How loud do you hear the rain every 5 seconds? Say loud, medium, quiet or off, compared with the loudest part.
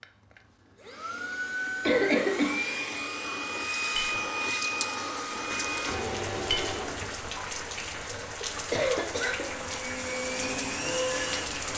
off, loud, loud.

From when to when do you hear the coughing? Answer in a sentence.
You can hear the coughing from 1.9 to 2.6 s and from 8.0 to 9.7 s.